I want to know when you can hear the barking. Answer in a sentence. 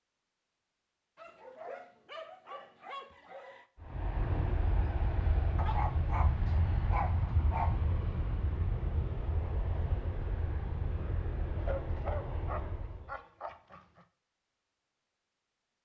The barking can be heard from 1.1 to 3.6 s, from 5.5 to 7.8 s and from 11.6 to 14.1 s.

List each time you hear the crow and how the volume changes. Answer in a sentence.
You can't hear the crow here.